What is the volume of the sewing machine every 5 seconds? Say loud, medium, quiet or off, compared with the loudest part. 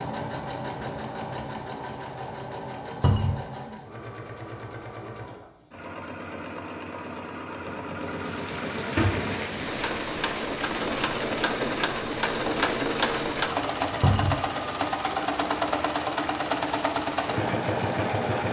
medium, medium, loud, loud.